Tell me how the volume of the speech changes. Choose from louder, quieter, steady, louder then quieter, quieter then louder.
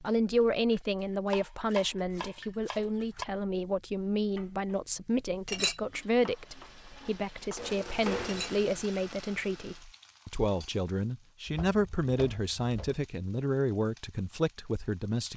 steady.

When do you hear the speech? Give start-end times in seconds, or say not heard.
0.0-15.3.